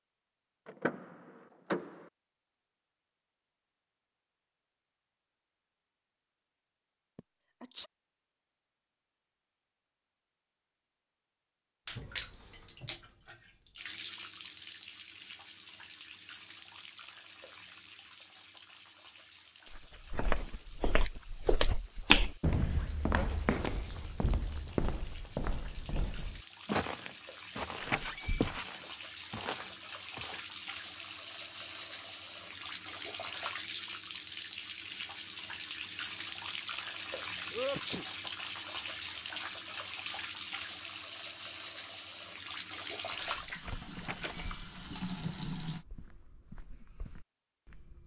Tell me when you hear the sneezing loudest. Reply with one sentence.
The loudest moment of the sneezing is at 38 seconds.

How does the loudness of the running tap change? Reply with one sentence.
The loudness of the running tap goes down, then up.